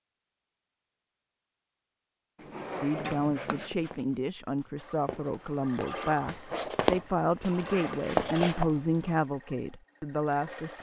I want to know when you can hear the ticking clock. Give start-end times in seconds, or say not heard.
not heard.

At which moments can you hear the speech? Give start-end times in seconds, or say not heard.
2.8-10.7.